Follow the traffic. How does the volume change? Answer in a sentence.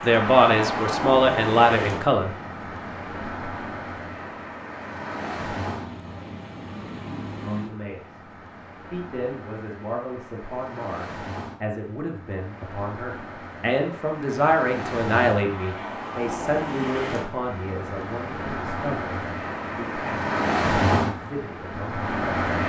The volume of the traffic goes down, then up.